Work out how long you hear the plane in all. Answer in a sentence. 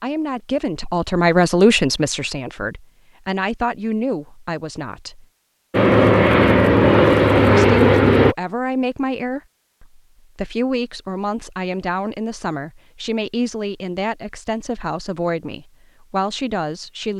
You can hear the plane for 3 seconds altogether.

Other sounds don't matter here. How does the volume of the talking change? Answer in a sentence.
The loudness of the talking goes down.